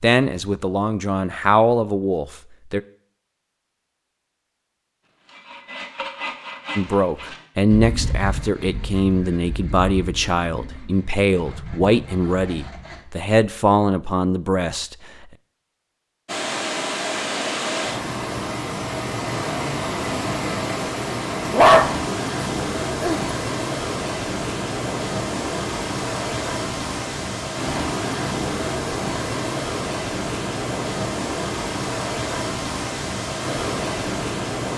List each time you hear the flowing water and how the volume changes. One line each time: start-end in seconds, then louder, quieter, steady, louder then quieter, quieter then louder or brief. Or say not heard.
16.2-34.7 steady.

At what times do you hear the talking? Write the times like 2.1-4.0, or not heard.
0.0-2.8, 6.8-15.2.